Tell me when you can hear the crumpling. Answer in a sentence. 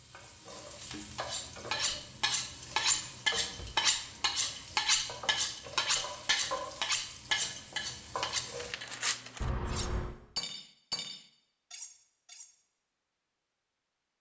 You can hear the crumpling from 8.6 to 9.5 s.